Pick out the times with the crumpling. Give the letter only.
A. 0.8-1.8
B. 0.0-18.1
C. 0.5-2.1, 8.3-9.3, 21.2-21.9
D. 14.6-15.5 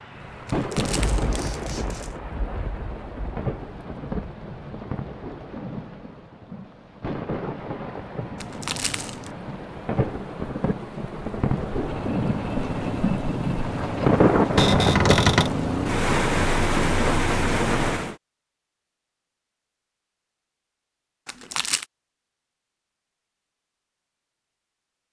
C.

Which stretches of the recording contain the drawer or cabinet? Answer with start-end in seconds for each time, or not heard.
14.6-15.5.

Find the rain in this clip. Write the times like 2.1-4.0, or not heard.
0.0-18.1.